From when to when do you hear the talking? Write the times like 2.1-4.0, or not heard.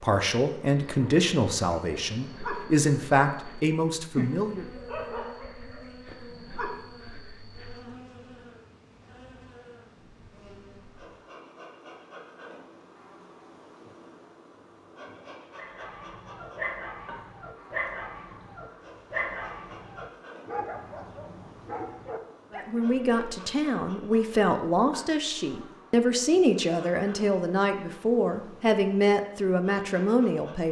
0.0-4.7, 22.5-30.6.